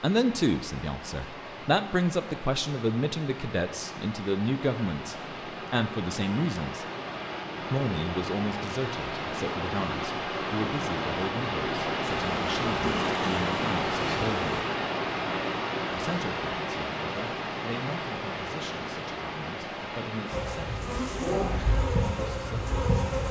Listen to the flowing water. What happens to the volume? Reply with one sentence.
The loudness of the flowing water goes up, then down.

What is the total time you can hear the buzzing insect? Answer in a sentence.
The buzzing insect can be heard for 5 seconds in total.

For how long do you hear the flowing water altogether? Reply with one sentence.
The flowing water can be heard for 23 seconds in total.